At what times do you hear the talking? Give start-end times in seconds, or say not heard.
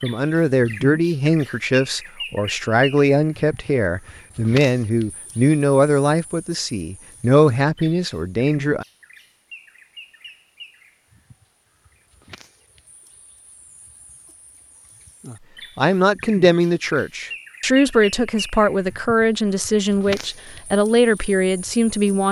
0.0-8.8, 15.8-22.2.